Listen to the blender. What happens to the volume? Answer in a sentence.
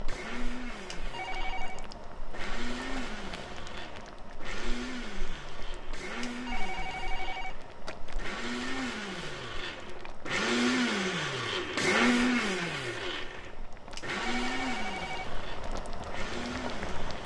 The volume of the blender goes up, then down.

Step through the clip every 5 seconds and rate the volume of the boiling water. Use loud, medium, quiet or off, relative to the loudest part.
medium, medium, medium, loud.